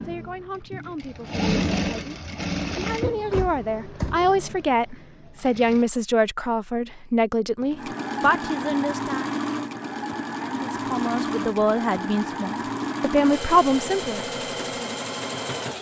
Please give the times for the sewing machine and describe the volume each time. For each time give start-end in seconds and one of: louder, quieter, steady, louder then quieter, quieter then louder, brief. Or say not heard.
0.0-5.8 louder then quieter
7.6-15.7 steady.